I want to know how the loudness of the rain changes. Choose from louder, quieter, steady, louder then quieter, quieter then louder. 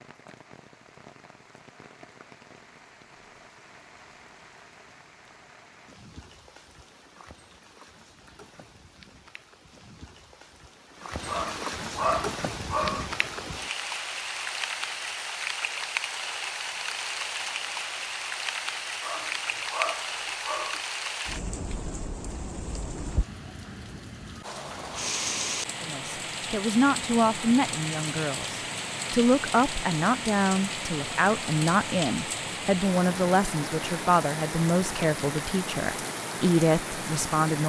louder.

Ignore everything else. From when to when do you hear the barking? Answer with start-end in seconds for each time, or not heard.
11.2-13.1, 19.0-20.9.